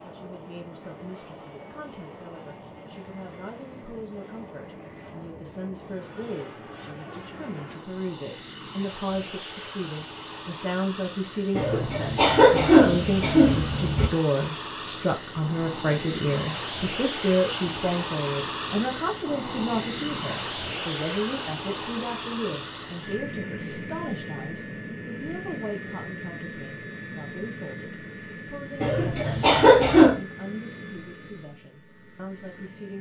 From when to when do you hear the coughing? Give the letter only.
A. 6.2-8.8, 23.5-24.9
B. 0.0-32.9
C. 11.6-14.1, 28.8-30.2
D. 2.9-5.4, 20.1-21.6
C.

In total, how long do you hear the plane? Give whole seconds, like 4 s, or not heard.
33 s.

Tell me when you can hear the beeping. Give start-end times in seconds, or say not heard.
not heard.